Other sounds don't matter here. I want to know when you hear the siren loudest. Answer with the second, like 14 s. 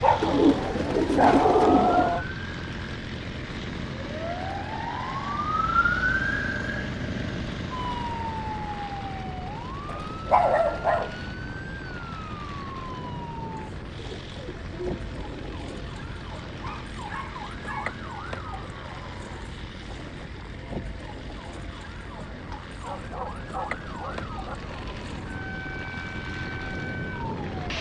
6 s.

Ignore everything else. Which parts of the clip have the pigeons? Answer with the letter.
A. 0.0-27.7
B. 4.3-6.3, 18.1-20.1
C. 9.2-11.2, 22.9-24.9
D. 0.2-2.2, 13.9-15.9
D.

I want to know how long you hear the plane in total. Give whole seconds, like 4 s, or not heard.
28 s.